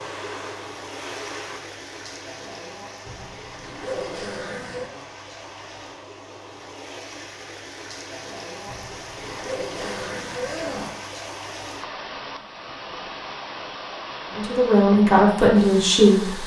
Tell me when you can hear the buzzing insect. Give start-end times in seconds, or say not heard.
0.0-1.6.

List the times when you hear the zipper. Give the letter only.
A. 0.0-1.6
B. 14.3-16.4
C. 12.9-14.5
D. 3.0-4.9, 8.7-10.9
D.